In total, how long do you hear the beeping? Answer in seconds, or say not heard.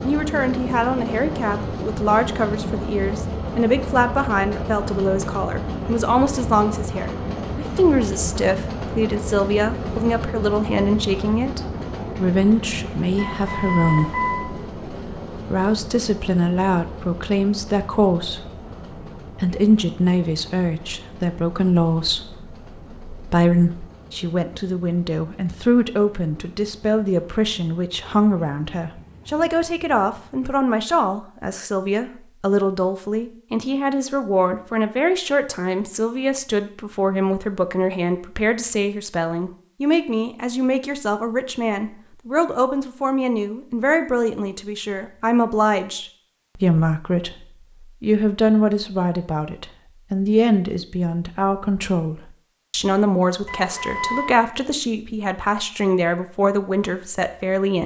2 s.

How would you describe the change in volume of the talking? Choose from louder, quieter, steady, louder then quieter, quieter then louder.
steady.